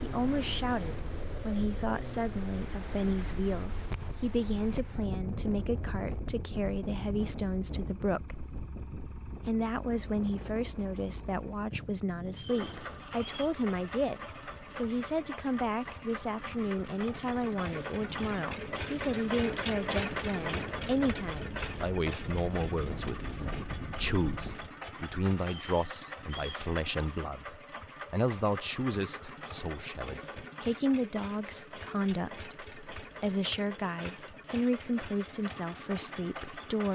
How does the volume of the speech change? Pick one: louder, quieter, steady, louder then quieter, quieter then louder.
steady.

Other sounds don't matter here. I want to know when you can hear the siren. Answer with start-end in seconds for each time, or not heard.
not heard.